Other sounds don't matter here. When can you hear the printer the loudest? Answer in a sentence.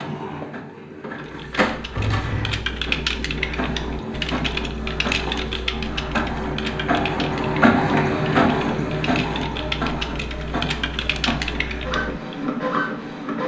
The loudest moment of the printer is at 8 seconds.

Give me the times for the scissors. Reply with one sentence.
You can hear the scissors from 1.9 to 2.6 s.